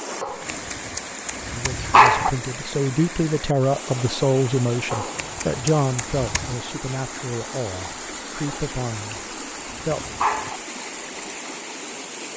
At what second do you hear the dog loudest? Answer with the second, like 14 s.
2 s.